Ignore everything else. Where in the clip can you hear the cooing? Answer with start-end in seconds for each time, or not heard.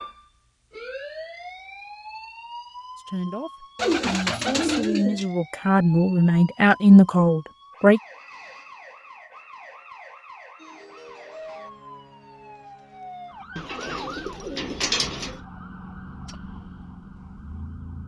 3.8-5.2, 13.6-15.4.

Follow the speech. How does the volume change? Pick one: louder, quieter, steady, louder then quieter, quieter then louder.
louder.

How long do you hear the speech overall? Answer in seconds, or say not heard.
5 s.